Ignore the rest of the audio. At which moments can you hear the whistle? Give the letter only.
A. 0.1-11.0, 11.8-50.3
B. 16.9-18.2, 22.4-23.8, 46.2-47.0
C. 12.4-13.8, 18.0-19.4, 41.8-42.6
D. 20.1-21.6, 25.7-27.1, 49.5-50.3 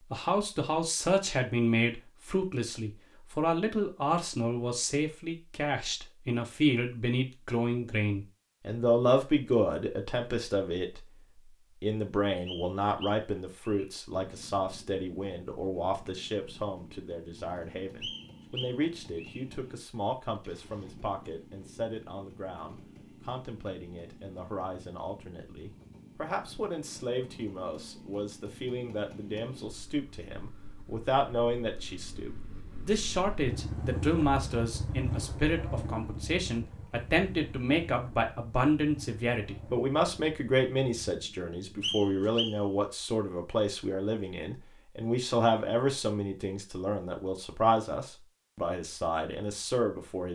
C.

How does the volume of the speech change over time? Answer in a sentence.
The volume of the speech goes down, then up.